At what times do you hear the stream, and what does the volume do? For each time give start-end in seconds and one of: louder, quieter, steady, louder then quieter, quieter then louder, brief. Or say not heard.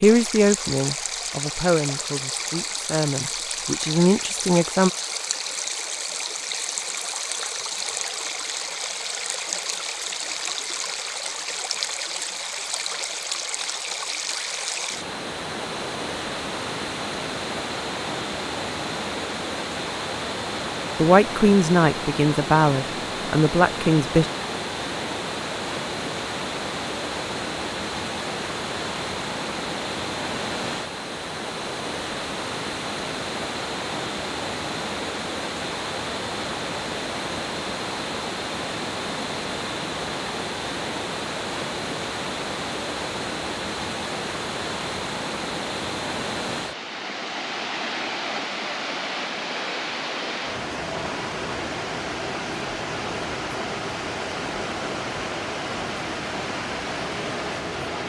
0.0-58.0 steady.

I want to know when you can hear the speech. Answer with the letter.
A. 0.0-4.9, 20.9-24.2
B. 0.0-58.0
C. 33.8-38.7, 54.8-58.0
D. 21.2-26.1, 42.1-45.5
A.